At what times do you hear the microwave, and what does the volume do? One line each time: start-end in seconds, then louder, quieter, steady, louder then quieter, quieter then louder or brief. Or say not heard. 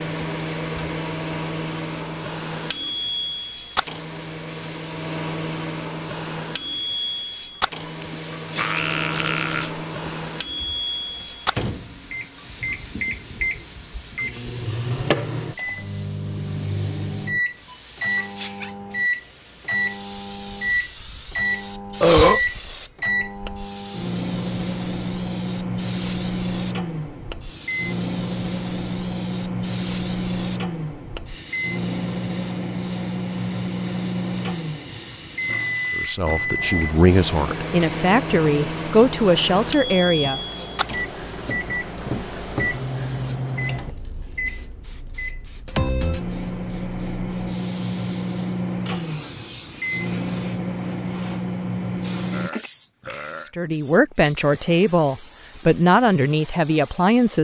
0.0-52.5 steady.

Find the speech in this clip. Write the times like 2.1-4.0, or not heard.
36.0-40.6, 53.5-57.3.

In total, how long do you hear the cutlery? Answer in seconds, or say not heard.
not heard.